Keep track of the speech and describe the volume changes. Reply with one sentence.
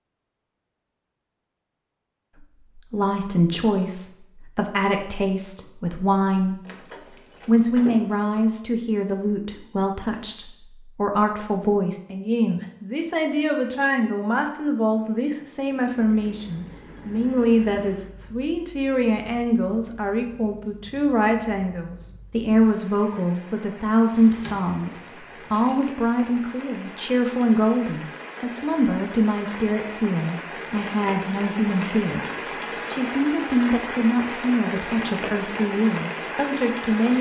The volume of the speech stays about the same.